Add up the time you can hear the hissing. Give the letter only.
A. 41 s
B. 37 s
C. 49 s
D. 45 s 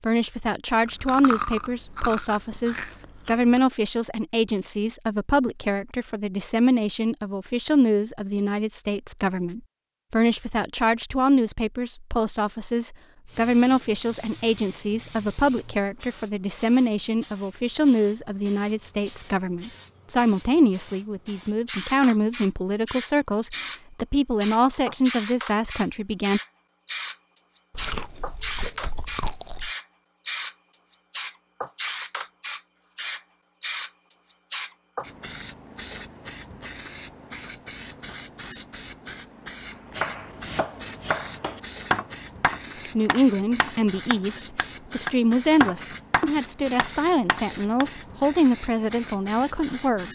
B.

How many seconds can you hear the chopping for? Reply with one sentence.
You can hear the chopping for 8 seconds altogether.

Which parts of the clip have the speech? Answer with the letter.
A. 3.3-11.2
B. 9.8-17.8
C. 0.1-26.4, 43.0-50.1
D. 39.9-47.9
C.